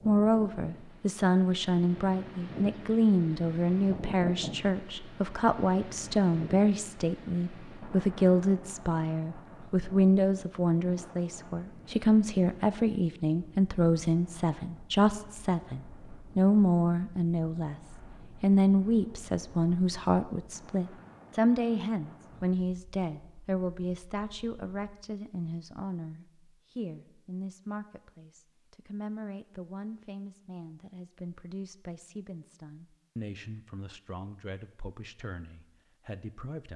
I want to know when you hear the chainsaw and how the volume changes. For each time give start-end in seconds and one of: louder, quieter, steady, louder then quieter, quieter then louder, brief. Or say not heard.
not heard.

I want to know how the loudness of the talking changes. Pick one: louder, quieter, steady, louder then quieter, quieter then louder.
quieter.